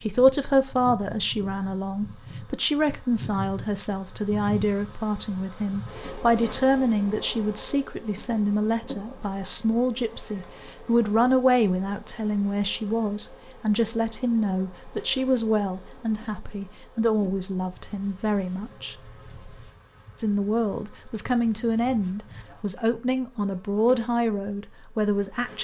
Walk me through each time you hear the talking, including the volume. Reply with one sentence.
You can hear the talking from 0.0 to 18.9 s, at a steady volume; and from 20.1 to 25.5 s, at a steady volume.